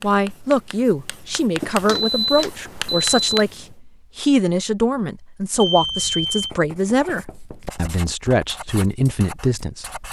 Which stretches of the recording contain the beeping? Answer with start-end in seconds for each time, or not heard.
1.6-3.5, 5.5-6.5.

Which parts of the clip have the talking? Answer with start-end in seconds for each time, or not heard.
0.0-9.9.